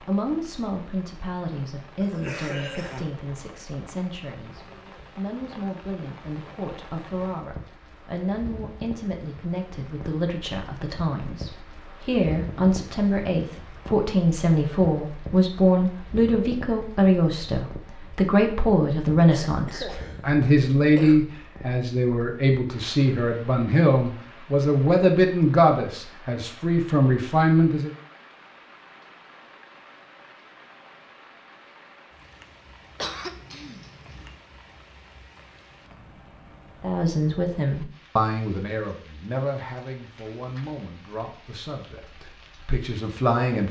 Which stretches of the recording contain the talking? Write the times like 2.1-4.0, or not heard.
0.0-27.9, 36.8-43.6.